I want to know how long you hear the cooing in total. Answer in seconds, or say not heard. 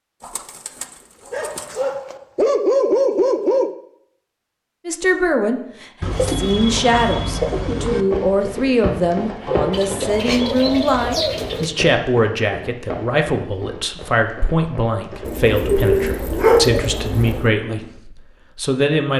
8 s.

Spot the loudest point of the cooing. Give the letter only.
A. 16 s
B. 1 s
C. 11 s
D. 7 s
A.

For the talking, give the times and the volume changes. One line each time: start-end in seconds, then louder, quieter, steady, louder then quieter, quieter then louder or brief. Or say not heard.
4.8-19.1 steady.